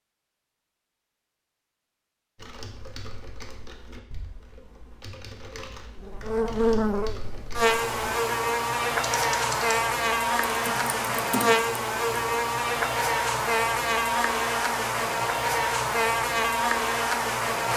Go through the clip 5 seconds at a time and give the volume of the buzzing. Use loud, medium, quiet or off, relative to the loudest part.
off, loud, loud, loud.